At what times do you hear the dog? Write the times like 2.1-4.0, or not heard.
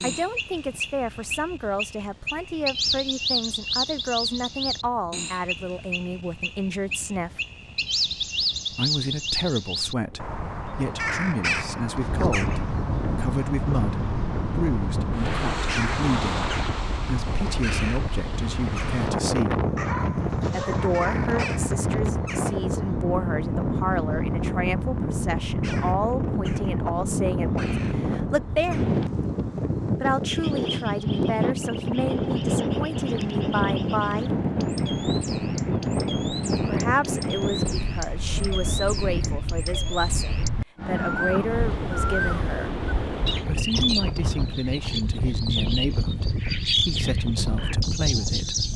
19.8-21.6.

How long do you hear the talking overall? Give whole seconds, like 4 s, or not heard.
42 s.